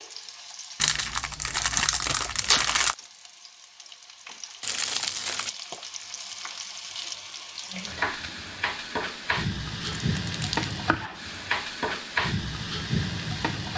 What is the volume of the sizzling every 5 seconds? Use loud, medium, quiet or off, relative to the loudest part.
quiet, medium, loud.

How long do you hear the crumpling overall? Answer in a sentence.
You can hear the crumpling for 4 seconds altogether.